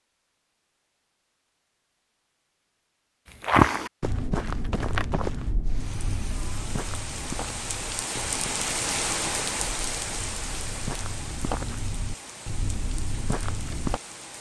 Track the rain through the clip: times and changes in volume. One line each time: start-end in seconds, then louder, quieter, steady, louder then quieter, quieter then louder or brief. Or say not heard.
5.7-14.3 louder then quieter.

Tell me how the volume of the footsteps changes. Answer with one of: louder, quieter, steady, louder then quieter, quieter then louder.
quieter then louder.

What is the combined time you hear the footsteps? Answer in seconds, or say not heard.
11 s.